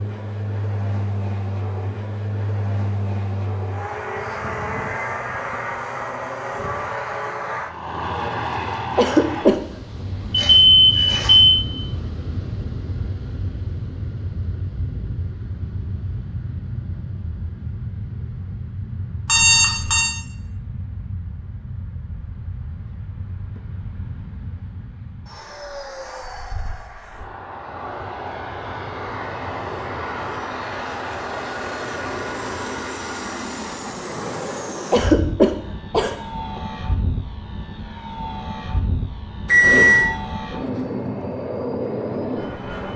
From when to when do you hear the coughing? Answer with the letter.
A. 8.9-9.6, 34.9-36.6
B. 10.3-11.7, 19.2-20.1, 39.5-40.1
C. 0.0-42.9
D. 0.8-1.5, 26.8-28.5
A.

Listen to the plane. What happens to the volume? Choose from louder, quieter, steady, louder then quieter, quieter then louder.
quieter then louder.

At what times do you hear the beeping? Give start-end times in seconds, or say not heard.
10.3-11.7, 19.2-20.1, 39.5-40.1.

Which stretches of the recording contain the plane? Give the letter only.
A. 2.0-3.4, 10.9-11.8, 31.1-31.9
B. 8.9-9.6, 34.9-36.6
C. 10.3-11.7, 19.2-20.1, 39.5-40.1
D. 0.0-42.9
D.